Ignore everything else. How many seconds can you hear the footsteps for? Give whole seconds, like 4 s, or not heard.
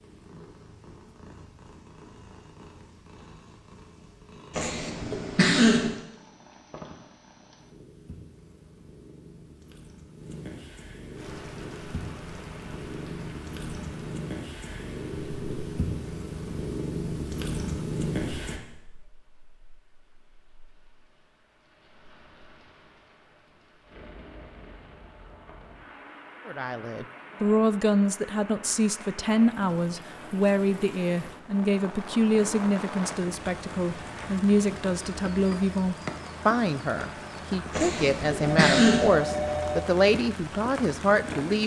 not heard.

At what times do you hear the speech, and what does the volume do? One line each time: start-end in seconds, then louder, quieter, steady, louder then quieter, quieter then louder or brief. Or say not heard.
26.4-41.6 steady.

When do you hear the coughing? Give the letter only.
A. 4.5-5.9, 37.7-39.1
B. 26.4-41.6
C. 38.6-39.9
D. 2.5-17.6
A.